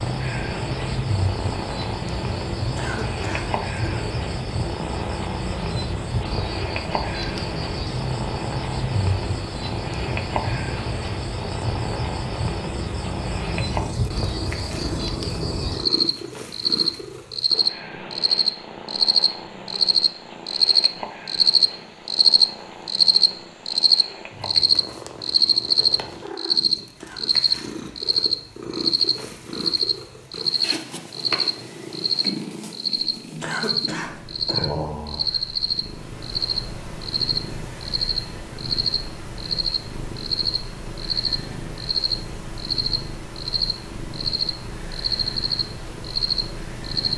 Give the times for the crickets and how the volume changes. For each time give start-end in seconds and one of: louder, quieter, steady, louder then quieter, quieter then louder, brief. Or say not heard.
0.0-47.1 louder then quieter.